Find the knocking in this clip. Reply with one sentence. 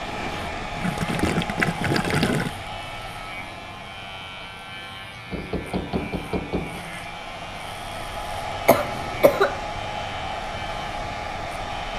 You can hear the knocking from 5.3 to 6.8 s.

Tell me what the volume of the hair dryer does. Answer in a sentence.
The loudness of the hair dryer goes down, then up.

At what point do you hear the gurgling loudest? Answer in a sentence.
The loudest moment of the gurgling is at 2 seconds.